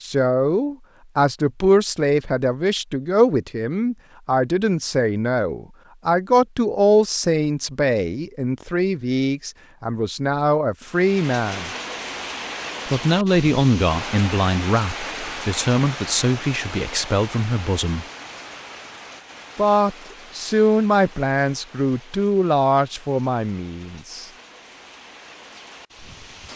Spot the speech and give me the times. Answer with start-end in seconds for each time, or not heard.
0.0-11.7, 12.8-18.1, 19.6-24.2.